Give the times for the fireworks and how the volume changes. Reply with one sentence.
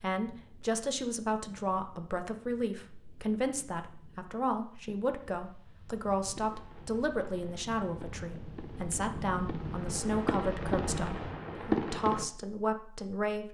You can hear the fireworks from 6.3 to 12.2 s, getting louder.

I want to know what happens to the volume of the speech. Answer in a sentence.
The loudness of the speech stays about the same.